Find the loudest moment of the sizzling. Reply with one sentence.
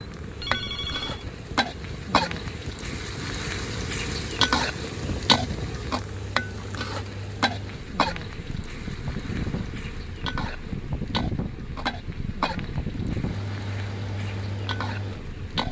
The loudest moment of the sizzling is at 5 seconds.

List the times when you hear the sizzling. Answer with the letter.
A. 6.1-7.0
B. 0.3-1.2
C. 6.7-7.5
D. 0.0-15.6
D.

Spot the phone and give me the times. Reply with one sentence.
The phone can be heard from 0.3 to 1.2 s.